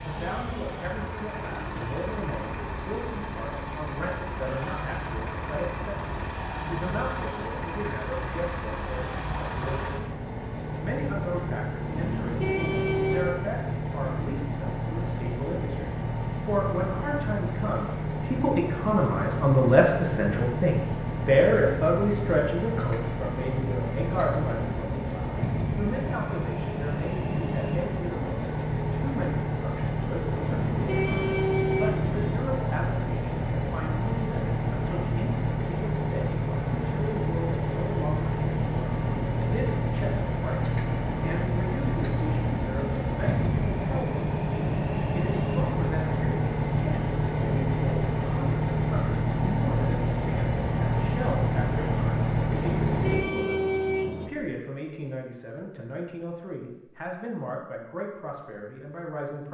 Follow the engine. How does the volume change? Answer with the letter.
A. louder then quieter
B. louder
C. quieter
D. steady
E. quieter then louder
B.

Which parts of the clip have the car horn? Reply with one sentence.
You can hear the car horn from 11.8 to 13.3 s, from 30.4 to 32.4 s and from 52.5 to 54.3 s.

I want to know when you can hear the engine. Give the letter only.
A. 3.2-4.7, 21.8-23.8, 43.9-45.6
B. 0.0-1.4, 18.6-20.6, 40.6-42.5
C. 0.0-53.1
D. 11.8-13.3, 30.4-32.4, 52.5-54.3
C.